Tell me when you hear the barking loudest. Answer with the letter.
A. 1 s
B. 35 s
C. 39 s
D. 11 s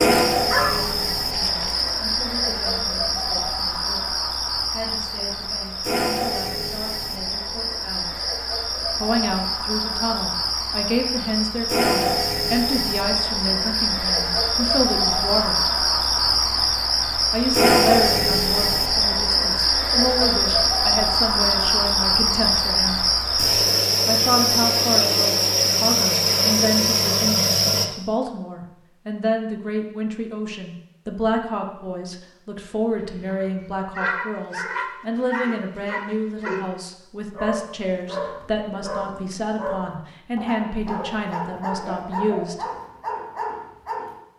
A.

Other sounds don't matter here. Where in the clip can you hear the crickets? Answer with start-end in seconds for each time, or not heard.
0.0-27.9.